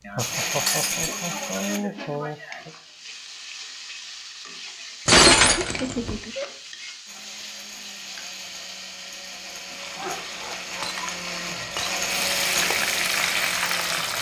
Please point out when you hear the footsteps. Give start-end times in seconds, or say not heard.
not heard.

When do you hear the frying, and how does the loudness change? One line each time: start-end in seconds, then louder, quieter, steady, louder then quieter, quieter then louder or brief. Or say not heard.
1.9-14.1 louder.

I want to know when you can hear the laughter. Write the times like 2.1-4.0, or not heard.
0.1-2.7, 5.6-6.5, 9.9-10.9.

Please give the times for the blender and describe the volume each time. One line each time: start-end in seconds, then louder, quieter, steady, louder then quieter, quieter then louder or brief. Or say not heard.
0.1-1.8 brief
7.0-14.1 louder.